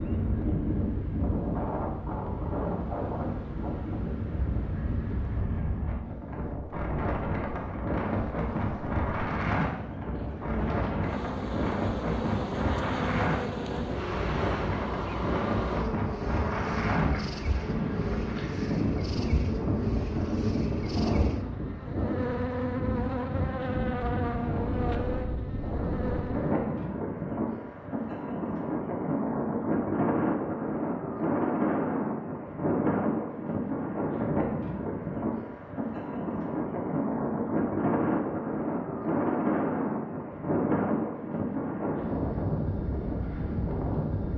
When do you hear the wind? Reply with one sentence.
You can hear the wind from 0.0 to 44.3 s.